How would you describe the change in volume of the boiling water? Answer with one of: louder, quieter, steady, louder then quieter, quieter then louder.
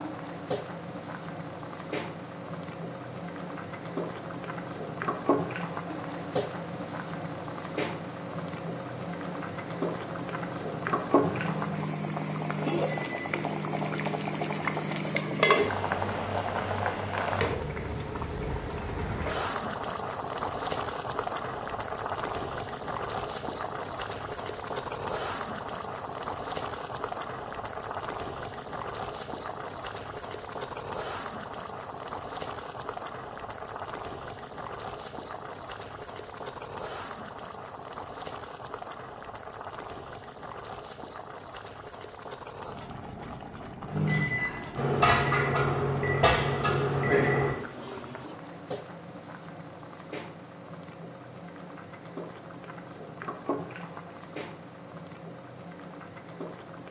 quieter.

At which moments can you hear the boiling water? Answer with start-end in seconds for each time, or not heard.
0.0-56.8.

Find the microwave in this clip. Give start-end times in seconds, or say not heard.
11.2-15.6, 43.9-47.5.